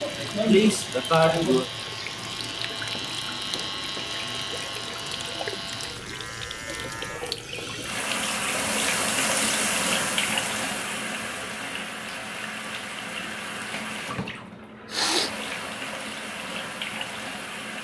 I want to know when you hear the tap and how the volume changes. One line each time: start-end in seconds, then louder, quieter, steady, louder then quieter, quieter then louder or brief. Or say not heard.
0.0-17.8 louder then quieter.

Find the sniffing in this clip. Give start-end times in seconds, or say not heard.
0.0-1.6, 14.9-15.3.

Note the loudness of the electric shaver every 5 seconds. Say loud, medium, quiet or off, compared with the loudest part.
loud, loud, off, off.